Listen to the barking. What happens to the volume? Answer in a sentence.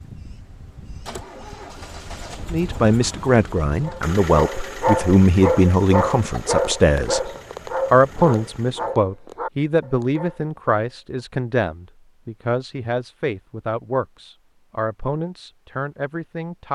The loudness of the barking goes down.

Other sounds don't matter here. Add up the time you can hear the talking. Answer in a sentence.
The talking can be heard for 14 seconds in total.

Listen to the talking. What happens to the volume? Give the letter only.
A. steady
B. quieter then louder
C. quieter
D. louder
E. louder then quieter
C.